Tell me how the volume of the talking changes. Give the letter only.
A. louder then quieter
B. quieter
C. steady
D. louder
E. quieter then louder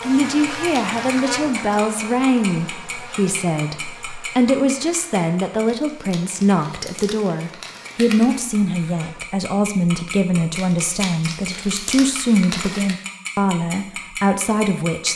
C.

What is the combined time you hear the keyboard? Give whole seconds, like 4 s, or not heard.
not heard.